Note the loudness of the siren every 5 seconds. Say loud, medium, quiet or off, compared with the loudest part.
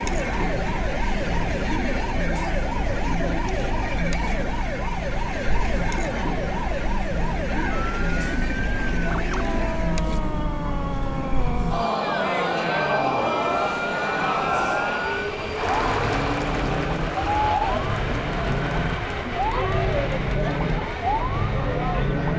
medium, medium, medium, loud, loud.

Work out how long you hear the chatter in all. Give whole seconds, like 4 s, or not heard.
22 s.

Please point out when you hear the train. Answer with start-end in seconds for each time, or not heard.
0.0-22.3.